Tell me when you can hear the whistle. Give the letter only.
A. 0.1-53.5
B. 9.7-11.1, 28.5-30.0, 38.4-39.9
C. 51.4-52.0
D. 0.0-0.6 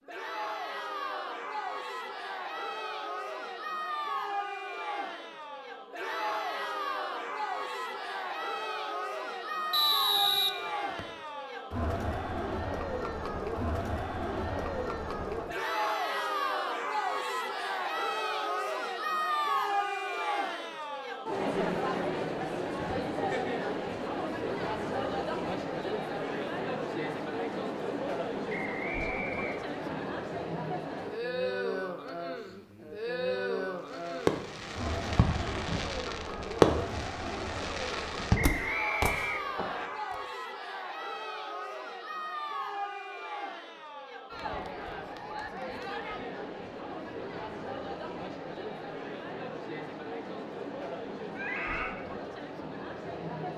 B.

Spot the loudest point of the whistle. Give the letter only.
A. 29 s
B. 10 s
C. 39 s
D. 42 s
B.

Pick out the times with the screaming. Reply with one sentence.
You can hear the screaming from 51.4 to 52.0 s.